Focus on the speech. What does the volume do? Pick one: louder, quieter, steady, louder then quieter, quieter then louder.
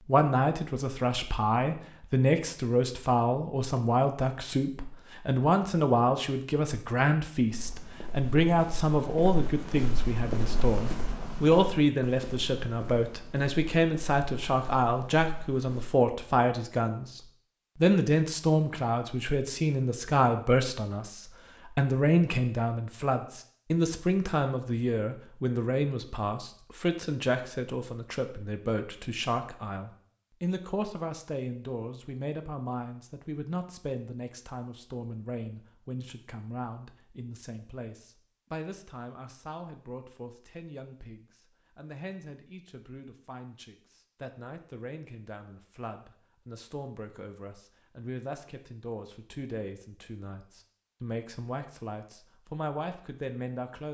quieter.